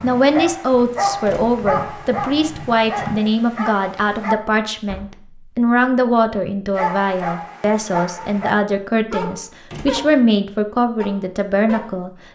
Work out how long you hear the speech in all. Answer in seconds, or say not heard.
12 s.